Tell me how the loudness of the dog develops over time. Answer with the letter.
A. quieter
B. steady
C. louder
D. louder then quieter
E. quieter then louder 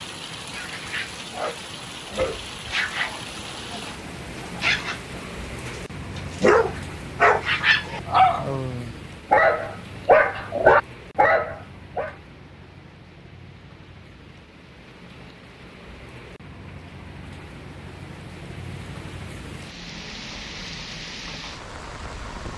C.